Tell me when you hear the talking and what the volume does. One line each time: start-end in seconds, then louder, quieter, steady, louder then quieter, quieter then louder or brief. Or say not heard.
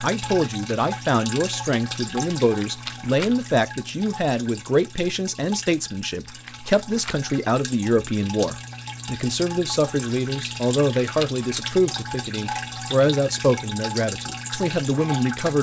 0.0-15.5 steady.